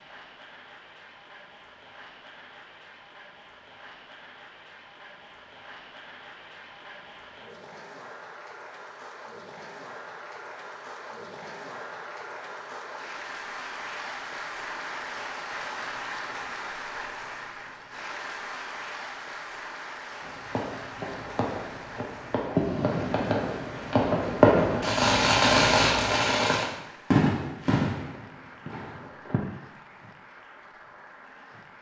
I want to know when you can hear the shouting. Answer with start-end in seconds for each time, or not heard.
not heard.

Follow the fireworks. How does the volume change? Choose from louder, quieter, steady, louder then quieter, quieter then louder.
louder then quieter.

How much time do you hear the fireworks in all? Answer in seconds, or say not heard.
9 s.